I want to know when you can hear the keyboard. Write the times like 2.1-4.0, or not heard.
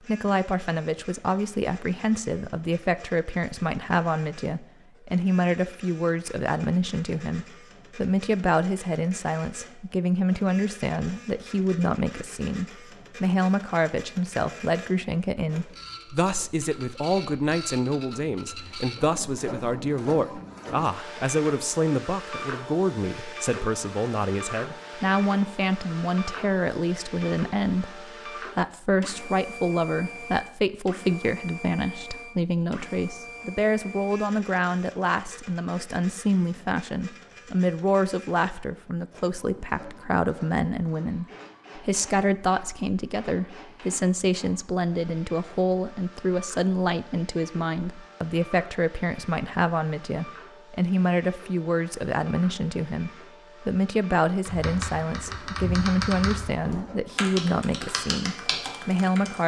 54.5-59.4.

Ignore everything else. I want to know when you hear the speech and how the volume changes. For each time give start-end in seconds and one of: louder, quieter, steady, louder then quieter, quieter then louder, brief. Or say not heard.
0.1-59.4 steady.